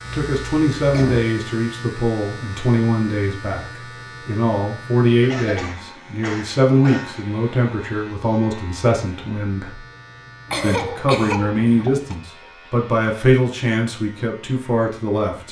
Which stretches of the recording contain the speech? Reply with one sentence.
You can hear the speech from 0.0 to 9.8 s and from 10.6 to 15.4 s.